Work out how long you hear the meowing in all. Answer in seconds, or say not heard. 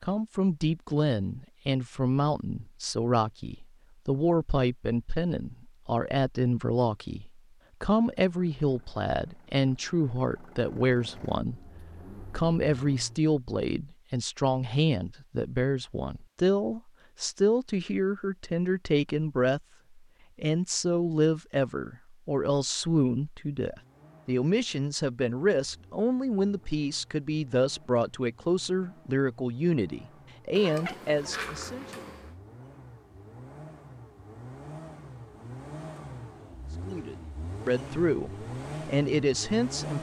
2 s.